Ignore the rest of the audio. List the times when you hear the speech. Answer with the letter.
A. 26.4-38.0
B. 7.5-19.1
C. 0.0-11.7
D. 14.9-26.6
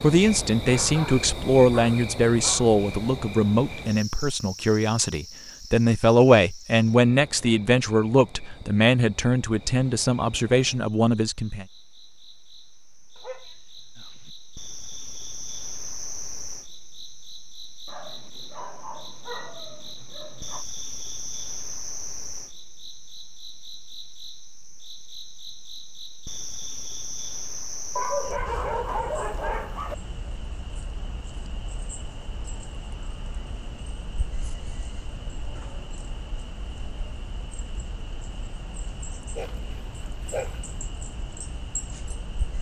C.